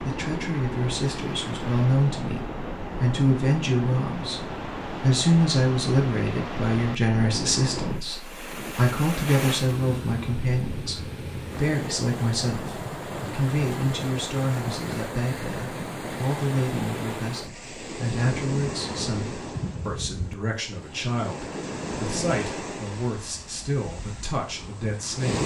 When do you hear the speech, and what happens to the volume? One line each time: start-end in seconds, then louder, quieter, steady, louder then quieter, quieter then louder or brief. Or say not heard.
0.0-25.4 quieter.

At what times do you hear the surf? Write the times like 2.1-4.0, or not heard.
0.0-25.4.